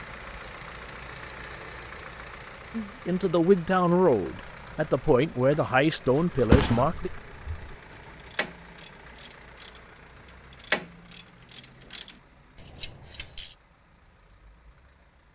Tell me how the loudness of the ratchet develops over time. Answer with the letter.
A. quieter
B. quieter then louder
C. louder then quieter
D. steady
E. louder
C.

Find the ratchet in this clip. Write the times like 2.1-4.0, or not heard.
6.2-13.6.